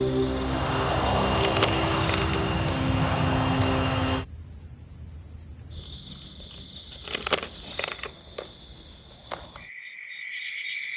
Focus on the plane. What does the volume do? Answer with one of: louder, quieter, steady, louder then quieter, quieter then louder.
steady.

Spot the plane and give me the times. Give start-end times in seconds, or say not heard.
0.0-4.2.